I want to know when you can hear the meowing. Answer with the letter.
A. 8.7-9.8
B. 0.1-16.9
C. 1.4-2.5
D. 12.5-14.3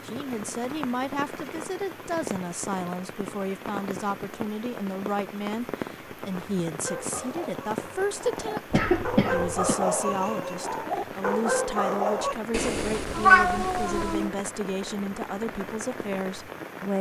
D.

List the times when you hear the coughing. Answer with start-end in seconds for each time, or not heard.
8.7-9.8.